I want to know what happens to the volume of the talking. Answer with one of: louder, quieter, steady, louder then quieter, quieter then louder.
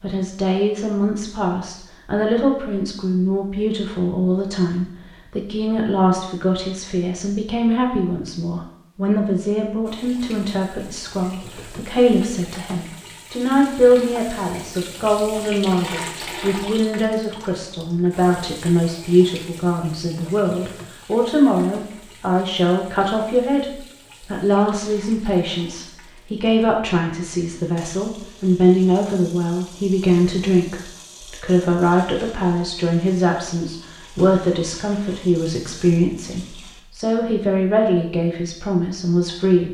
steady.